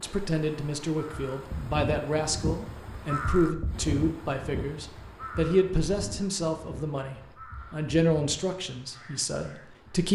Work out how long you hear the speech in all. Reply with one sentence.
The speech can be heard for 10 seconds in total.